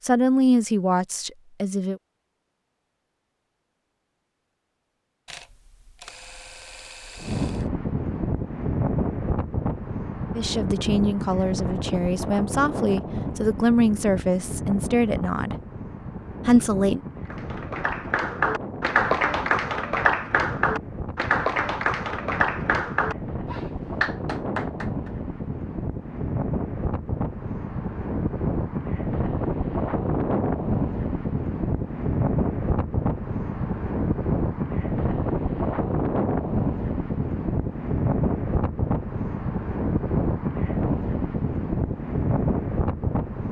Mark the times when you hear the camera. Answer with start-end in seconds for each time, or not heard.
5.2-7.7.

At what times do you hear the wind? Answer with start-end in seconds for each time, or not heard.
7.2-43.4.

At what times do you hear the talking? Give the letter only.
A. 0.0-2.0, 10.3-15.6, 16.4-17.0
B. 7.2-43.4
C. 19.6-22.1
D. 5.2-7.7
A.